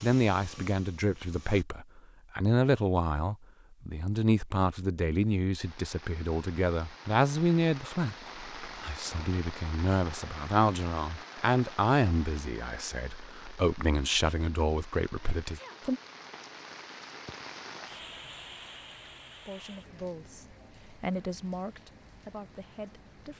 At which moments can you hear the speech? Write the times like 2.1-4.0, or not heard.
0.0-16.0, 19.4-23.3.